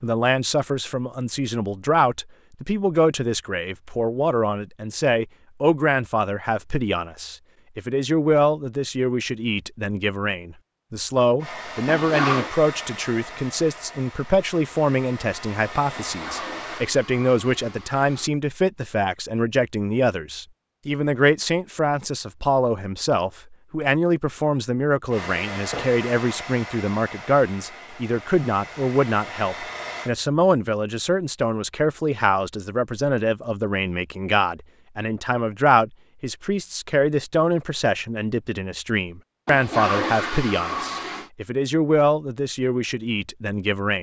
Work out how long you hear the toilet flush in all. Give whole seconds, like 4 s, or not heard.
5 s.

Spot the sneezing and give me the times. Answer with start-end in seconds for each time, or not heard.
not heard.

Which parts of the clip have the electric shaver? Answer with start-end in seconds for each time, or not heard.
not heard.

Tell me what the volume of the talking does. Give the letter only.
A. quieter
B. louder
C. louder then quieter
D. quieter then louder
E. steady
E.